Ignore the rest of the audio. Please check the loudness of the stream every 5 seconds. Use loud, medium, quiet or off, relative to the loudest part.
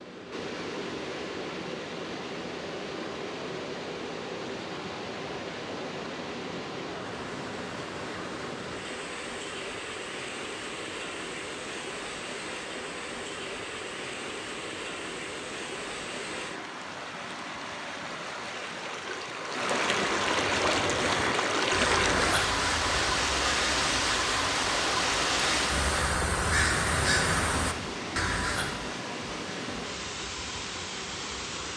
medium, medium, medium, medium, loud, medium, medium.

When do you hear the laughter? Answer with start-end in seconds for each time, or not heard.
not heard.